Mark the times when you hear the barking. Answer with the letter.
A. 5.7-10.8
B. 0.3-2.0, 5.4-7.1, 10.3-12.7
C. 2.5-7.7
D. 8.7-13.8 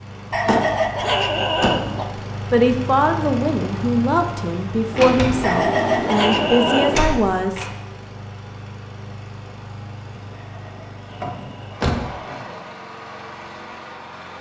B.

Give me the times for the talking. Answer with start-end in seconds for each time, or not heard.
2.5-7.7.